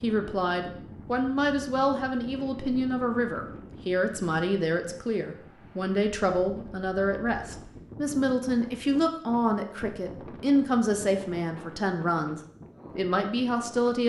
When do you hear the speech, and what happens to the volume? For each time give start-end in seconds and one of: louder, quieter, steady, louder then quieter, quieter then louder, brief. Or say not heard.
0.0-14.0 steady.